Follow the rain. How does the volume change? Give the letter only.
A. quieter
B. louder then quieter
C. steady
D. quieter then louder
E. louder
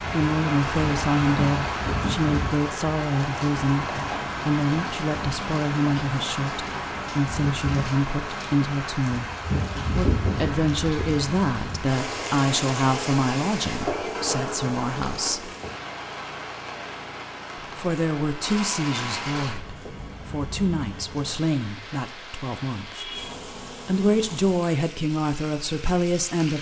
A.